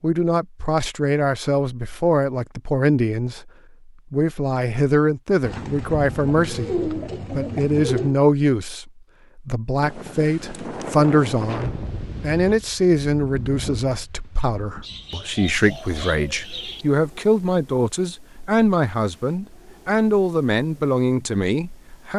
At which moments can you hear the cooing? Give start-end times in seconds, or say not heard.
5.4-8.2, 14.8-16.9.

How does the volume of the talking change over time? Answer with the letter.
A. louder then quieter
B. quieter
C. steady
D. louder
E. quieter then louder
C.